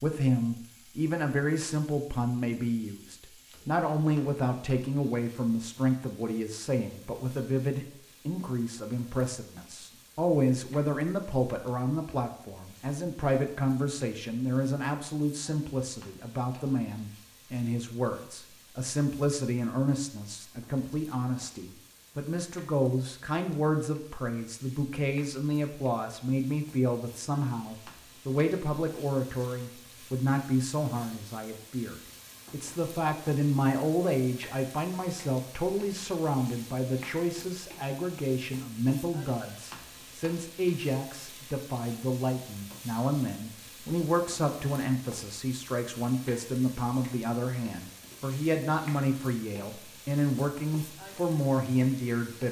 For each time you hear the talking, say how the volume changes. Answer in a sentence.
The talking can be heard from 0.0 to 52.4 s, at a steady volume.